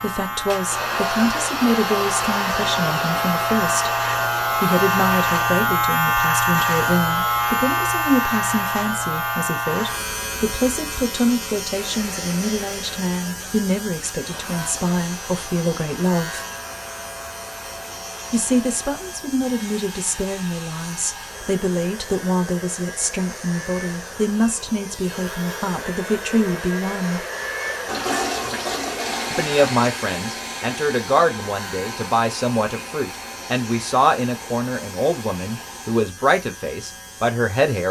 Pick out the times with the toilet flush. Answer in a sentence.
The toilet flush can be heard from 27.9 to 29.6 s.